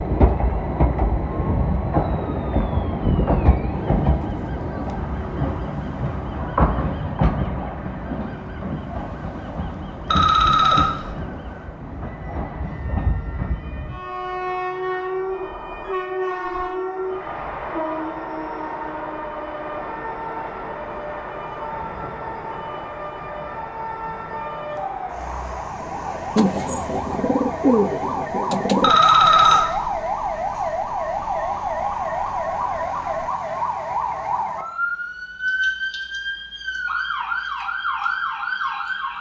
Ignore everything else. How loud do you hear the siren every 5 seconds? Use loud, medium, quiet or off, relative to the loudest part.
quiet, quiet, quiet, quiet, medium, loud, loud, loud.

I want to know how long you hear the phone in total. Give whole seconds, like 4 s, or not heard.
2 s.